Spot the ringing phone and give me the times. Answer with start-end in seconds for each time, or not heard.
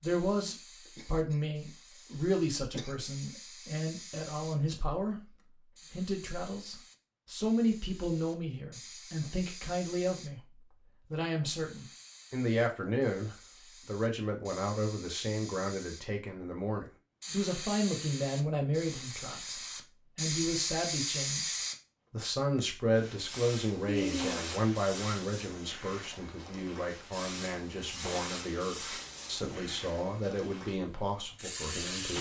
not heard.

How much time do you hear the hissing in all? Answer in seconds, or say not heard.
32 s.